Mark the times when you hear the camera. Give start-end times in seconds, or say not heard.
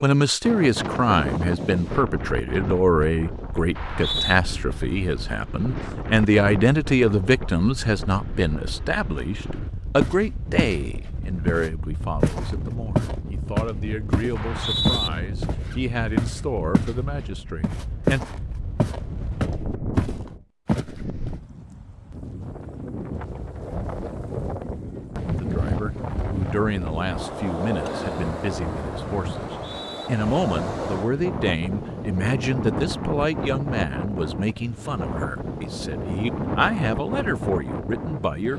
not heard.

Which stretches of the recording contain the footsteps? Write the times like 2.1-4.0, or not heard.
10.0-10.8, 11.4-16.9, 17.6-21.4.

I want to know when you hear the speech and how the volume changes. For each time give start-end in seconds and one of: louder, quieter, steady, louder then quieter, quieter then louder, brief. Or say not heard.
0.0-18.4 quieter
25.4-38.5 steady.